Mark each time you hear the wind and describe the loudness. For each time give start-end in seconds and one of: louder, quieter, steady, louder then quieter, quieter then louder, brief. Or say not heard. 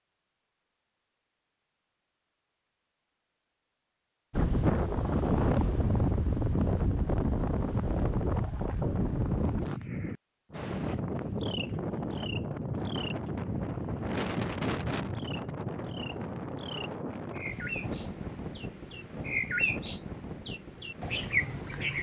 4.3-21.9 quieter.